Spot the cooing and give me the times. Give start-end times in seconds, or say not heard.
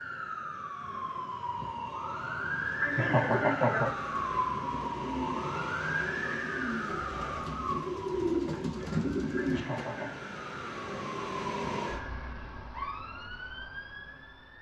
2.9-9.8.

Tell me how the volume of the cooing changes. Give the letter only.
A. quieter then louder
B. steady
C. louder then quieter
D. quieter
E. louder
E.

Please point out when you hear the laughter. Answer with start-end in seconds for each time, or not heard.
2.8-3.9, 9.3-10.2.